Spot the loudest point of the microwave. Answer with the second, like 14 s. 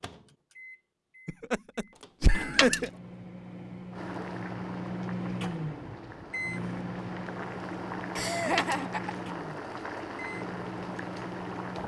5 s.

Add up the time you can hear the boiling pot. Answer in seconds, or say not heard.
8 s.